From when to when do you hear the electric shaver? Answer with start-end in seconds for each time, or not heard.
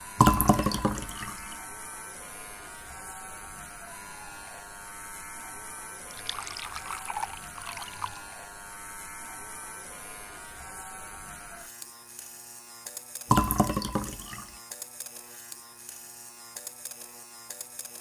0.0-17.9.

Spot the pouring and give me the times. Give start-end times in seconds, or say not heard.
0.1-1.6, 6.1-8.2, 13.3-14.4.